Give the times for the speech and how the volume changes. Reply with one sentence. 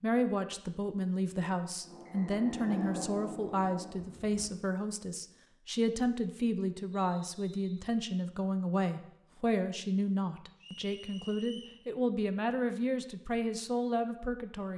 The speech can be heard from 0.0 to 14.7 s, at a steady volume.